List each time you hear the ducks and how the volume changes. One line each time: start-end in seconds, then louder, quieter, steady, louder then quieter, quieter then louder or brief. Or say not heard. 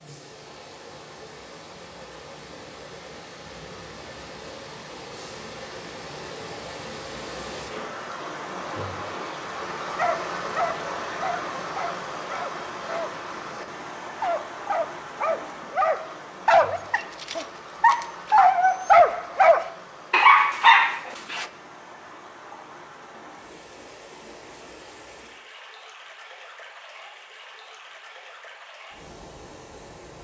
not heard.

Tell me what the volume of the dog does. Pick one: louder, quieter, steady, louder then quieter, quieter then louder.
louder.